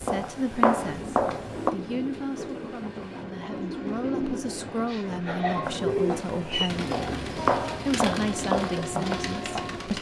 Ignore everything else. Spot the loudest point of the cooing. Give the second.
6 s.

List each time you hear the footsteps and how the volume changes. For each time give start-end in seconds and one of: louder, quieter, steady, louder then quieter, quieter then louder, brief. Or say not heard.
0.0-1.7 brief
5.6-9.8 louder then quieter.